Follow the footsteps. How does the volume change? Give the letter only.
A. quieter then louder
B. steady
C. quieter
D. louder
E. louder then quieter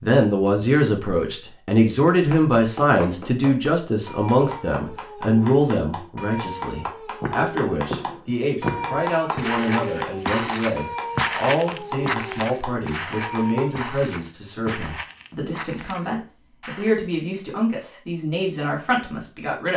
C.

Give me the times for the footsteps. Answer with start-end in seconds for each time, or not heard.
7.2-16.9.